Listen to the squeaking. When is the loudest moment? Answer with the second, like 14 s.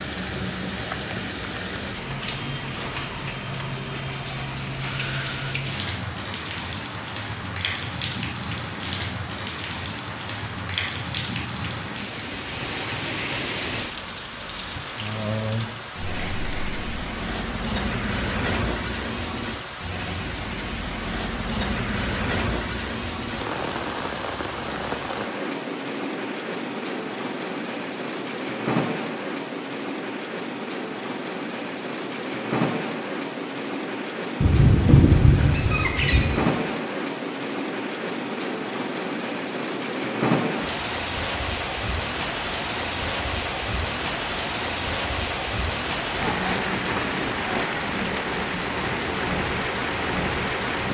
35 s.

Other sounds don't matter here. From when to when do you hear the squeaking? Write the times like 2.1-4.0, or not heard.
16.0-16.7, 34.4-36.3.